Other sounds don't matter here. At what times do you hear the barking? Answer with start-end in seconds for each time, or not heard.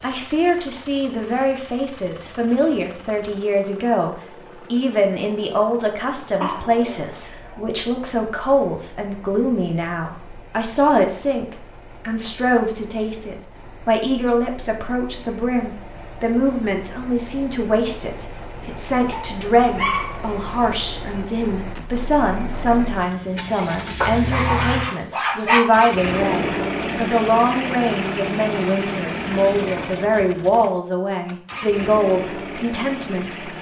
6.4-7.8, 19.1-20.2, 24.0-25.7.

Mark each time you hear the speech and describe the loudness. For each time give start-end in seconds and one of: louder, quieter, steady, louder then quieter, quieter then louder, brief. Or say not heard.
0.0-33.5 steady.